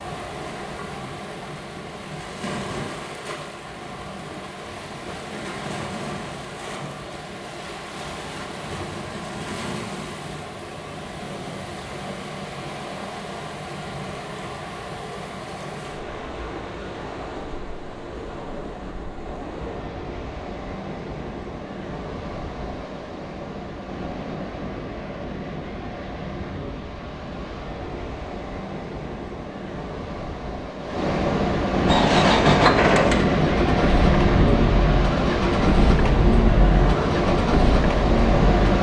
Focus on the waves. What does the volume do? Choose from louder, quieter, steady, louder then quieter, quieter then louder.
louder.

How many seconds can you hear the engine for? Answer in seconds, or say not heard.
7 s.